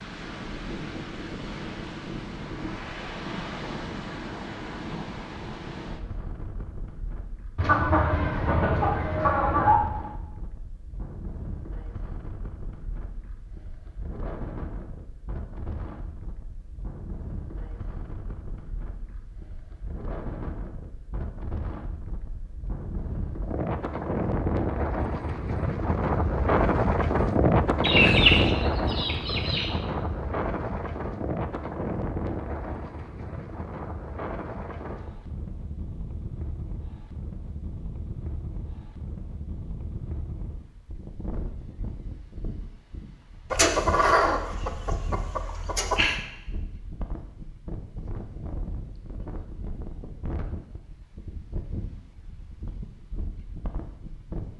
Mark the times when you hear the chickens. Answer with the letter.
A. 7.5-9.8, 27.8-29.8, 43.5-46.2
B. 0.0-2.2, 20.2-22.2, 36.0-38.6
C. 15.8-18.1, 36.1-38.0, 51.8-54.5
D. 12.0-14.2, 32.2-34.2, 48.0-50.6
A.